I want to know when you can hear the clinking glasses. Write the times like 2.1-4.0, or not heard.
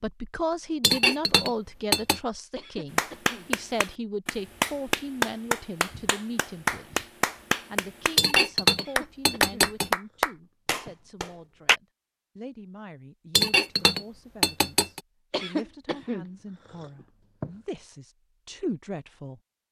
0.8-2.2, 8.2-9.9, 13.3-15.0.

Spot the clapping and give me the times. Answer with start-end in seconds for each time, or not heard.
3.0-11.8.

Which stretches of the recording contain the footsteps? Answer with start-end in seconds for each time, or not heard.
not heard.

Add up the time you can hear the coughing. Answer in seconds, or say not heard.
5 s.